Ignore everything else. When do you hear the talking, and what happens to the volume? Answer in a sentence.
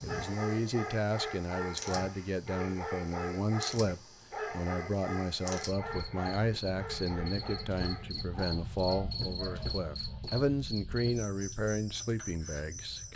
You can hear the talking from 0.0 to 13.1 s, at a steady volume.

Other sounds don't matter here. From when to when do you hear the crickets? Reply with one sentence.
You can hear the crickets from 0.0 to 13.1 s.